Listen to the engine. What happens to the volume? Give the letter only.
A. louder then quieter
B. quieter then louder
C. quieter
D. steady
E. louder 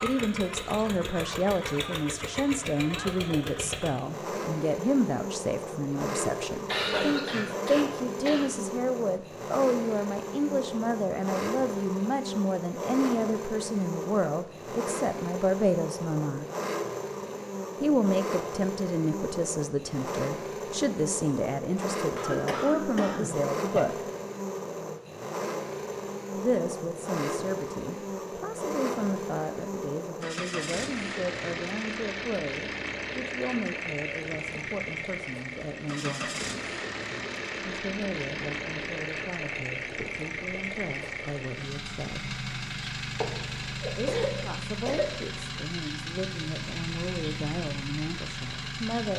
D.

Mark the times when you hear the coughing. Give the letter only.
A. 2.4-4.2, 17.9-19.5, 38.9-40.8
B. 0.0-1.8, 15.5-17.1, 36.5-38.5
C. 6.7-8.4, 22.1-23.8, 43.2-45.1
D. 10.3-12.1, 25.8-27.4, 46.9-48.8
C.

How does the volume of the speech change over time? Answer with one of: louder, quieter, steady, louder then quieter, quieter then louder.
quieter.